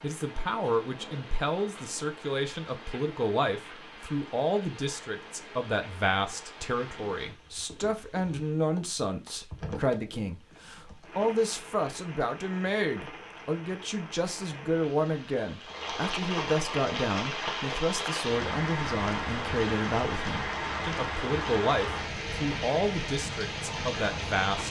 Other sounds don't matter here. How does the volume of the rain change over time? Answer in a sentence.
The loudness of the rain goes up.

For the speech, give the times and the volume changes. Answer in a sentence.
You can hear the speech from 0.0 to 24.6 s, at a steady volume.